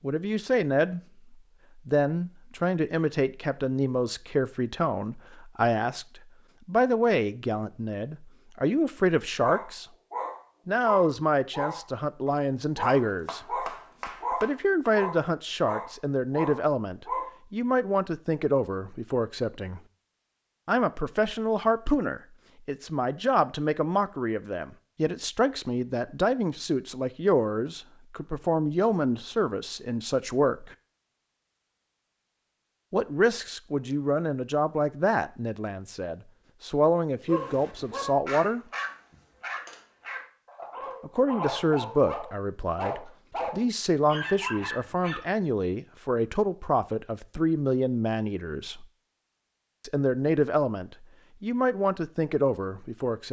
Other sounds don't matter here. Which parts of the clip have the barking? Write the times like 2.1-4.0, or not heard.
9.4-17.3, 37.2-45.2.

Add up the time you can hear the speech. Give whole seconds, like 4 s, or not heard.
46 s.